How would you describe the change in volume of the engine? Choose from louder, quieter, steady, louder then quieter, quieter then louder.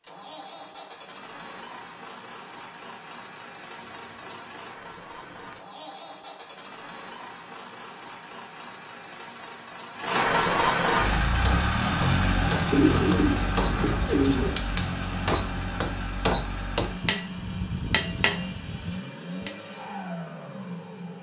louder then quieter.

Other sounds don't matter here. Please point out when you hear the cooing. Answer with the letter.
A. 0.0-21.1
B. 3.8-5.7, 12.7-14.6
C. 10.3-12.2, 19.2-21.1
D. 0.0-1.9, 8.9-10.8
B.